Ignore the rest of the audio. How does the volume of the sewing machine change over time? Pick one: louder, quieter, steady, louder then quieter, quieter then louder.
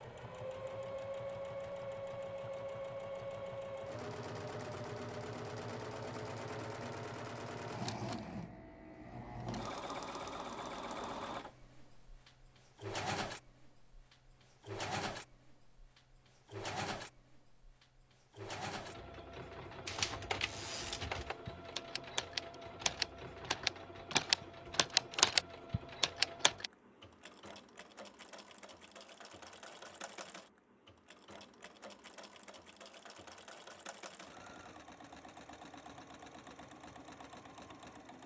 quieter.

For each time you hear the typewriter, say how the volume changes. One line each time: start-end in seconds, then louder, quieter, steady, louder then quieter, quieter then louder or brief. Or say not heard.
19.9-26.7 louder.